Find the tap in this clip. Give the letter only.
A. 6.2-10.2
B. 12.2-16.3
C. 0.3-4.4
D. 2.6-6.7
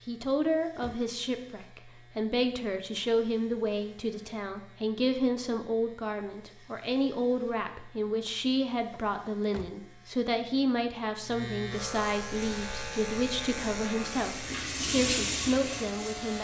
B.